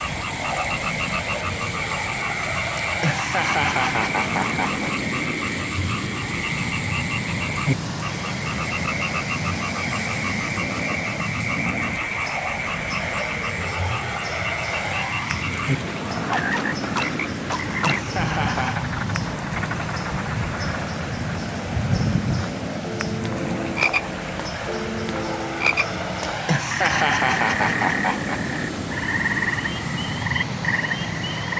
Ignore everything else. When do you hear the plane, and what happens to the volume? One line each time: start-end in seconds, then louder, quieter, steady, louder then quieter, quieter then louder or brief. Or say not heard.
0.0-31.5 steady.